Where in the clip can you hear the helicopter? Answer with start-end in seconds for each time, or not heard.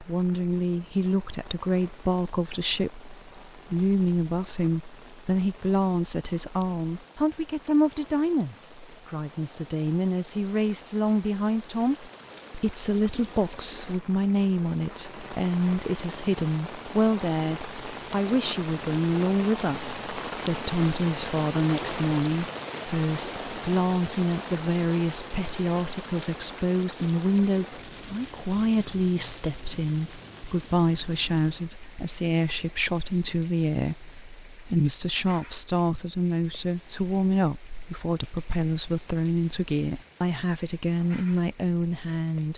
not heard.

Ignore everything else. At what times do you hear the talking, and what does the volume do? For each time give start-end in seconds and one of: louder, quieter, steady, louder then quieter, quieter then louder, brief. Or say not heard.
0.0-42.5 steady.